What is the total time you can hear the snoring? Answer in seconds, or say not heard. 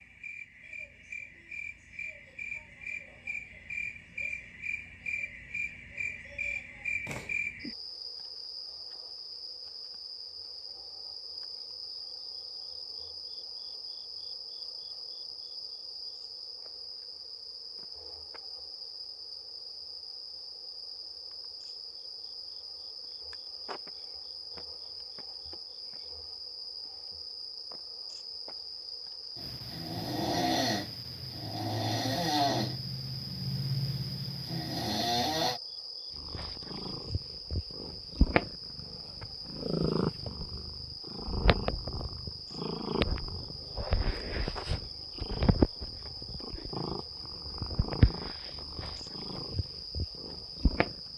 6 s.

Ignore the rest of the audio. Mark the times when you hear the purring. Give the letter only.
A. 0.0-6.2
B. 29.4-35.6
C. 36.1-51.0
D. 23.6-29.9
C.